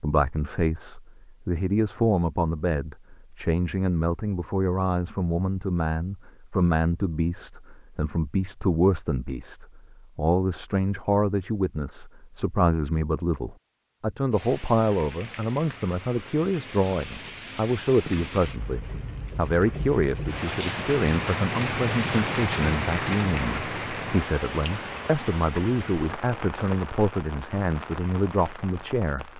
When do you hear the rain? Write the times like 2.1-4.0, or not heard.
14.3-29.3.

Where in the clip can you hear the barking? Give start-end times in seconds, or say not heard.
not heard.